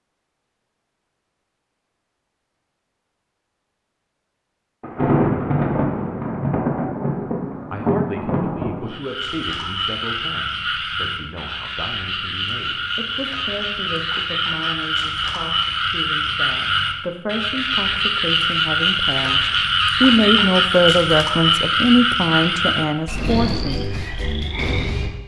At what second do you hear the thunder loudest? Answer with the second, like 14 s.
5 s.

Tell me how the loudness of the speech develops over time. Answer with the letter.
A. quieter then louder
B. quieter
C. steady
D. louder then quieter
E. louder
E.